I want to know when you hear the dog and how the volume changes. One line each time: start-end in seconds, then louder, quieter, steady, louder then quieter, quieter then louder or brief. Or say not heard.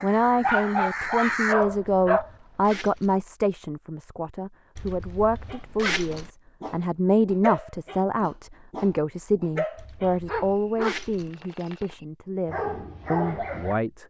0.0-2.8 brief
5.3-13.8 louder.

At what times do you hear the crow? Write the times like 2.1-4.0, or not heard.
0.0-1.6.